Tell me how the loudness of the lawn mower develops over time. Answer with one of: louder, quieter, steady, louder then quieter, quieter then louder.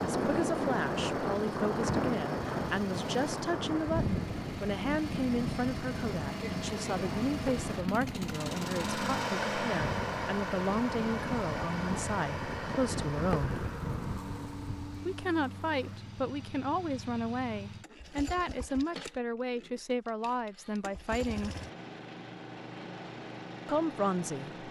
louder then quieter.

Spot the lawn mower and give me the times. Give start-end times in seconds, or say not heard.
0.0-24.6.